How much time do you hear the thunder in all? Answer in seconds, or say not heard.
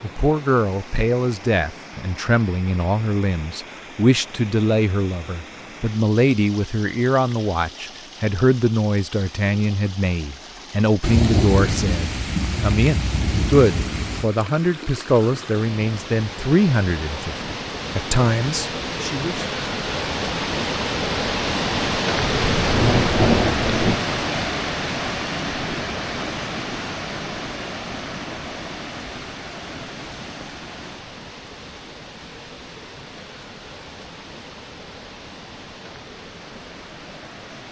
5 s.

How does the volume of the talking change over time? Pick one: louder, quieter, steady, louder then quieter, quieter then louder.
steady.